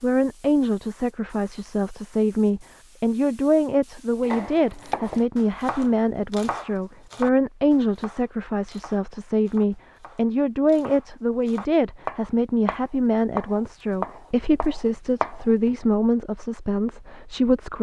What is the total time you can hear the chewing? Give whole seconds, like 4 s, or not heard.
not heard.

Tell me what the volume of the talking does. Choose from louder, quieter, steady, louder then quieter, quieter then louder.
steady.